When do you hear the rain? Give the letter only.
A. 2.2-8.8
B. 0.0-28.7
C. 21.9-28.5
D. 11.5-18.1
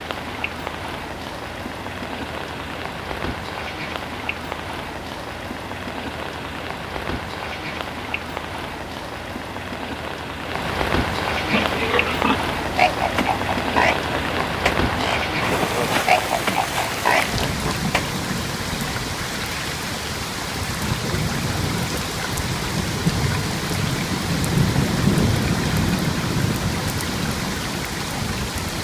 B.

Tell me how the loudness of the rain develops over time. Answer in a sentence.
The volume of the rain goes up.